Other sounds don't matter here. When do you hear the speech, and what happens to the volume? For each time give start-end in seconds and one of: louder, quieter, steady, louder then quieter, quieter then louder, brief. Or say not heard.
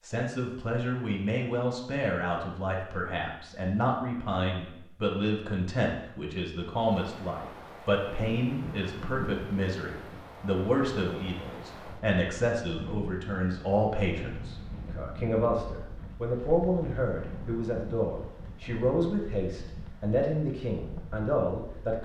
0.0-22.0 steady.